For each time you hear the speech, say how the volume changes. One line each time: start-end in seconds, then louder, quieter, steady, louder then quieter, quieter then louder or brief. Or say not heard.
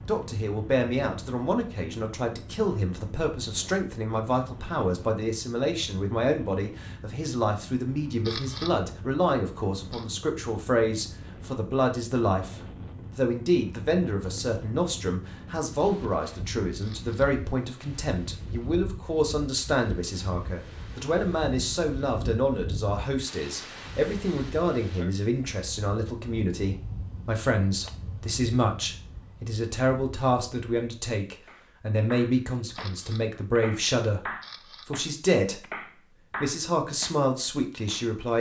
0.0-35.6 steady
36.4-38.3 brief.